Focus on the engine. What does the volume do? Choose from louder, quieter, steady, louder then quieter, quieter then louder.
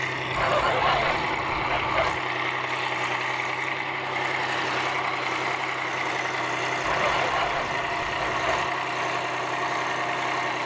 steady.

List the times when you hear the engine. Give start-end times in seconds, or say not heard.
0.0-10.6.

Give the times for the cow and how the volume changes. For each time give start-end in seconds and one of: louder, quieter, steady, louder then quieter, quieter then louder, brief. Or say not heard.
not heard.